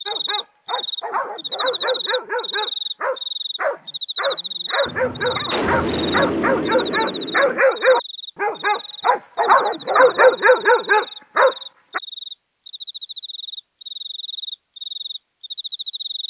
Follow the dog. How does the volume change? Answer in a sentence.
The volume of the dog goes up.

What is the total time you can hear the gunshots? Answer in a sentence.
You can hear the gunshots for 3 seconds altogether.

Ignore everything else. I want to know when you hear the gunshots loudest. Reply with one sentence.
The loudest moment of the gunshots is at 6 seconds.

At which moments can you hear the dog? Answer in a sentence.
You can hear the dog from 0.1 to 12.0 s.